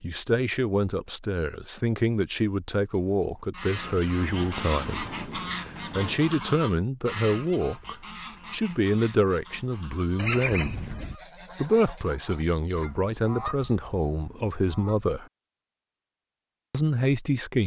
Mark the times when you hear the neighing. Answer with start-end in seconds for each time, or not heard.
3.7-5.2, 10.2-11.2.